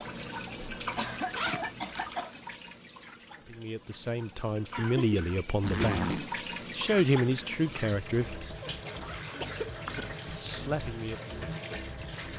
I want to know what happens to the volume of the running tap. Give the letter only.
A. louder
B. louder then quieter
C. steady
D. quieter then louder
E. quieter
D.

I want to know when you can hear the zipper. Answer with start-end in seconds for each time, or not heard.
0.9-2.0, 5.6-6.3, 8.8-9.9.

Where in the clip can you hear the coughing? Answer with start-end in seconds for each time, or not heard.
0.9-2.4, 4.7-6.0, 8.6-10.6.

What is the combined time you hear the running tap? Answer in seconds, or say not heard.
12 s.